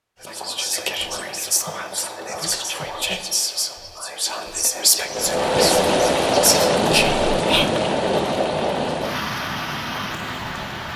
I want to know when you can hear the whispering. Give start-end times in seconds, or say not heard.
0.2-7.7.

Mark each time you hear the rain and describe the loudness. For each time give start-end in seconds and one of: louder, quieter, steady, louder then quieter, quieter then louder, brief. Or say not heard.
5.0-10.9 quieter.